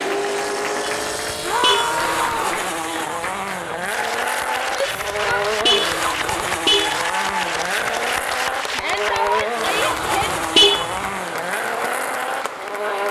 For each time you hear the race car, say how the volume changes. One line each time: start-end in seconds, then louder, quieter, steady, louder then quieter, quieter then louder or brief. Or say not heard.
0.0-13.0 steady.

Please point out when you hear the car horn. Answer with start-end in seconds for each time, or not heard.
0.8-2.4, 4.8-7.0, 9.8-10.9.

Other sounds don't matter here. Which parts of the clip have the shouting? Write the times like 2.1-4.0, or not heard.
1.4-2.6, 4.7-5.5, 8.7-10.3.